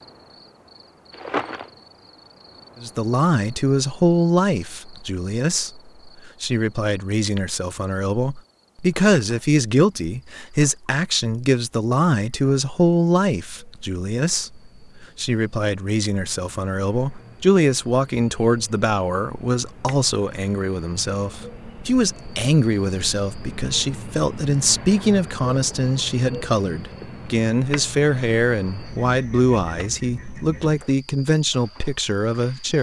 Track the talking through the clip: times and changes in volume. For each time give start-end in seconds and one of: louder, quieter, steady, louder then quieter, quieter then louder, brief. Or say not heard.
2.8-32.7 steady.